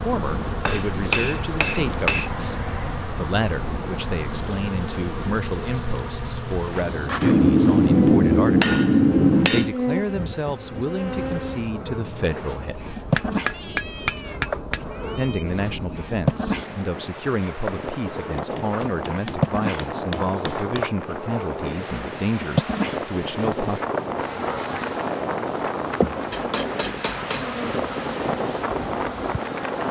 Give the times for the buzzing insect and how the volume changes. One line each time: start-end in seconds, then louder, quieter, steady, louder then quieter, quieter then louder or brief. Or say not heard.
0.0-29.8 steady.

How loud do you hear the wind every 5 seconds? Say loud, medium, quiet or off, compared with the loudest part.
medium, medium, medium, medium, loud, loud.